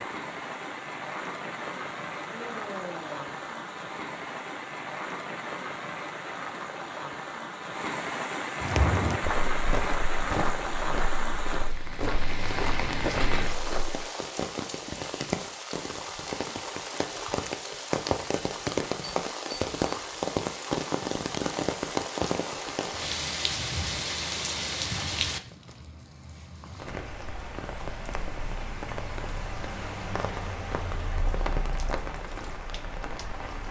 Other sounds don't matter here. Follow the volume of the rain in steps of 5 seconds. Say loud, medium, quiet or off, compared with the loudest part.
medium, loud, loud, loud, loud, medium, medium.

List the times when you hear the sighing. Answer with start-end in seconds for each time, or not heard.
2.2-3.4.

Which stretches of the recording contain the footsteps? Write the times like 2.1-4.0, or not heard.
8.6-14.1.